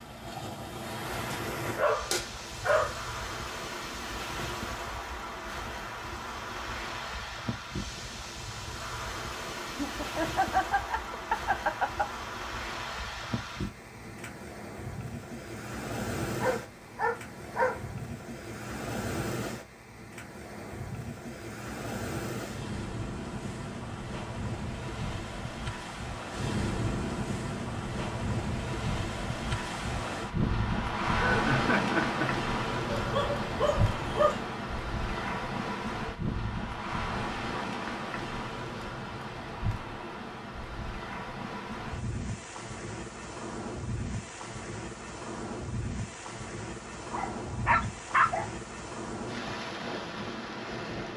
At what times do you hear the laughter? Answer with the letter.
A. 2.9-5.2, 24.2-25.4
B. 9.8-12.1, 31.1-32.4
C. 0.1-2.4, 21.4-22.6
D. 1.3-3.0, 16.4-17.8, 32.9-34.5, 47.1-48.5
B.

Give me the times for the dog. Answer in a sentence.
You can hear the dog from 1.3 to 3.0 s, from 16.4 to 17.8 s, from 32.9 to 34.5 s and from 47.1 to 48.5 s.